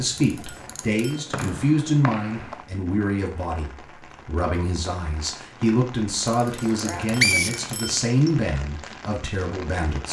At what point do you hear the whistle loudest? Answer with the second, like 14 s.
7 s.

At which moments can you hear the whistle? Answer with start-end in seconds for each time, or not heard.
1.3-2.6, 6.6-8.3.